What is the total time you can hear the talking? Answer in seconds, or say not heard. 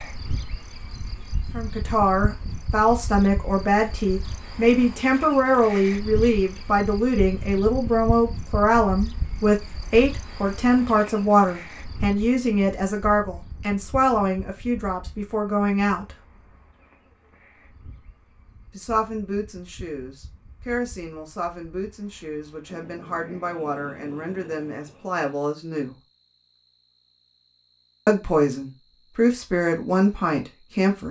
25 s.